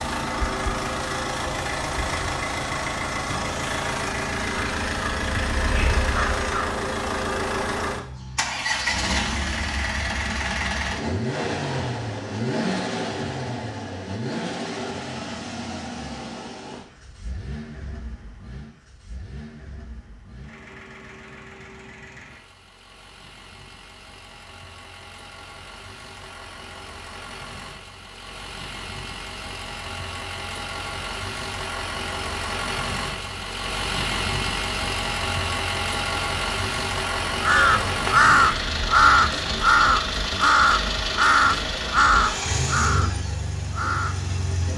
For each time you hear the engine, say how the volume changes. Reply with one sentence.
You can hear the engine from 0.0 to 44.7 s, getting quieter then louder.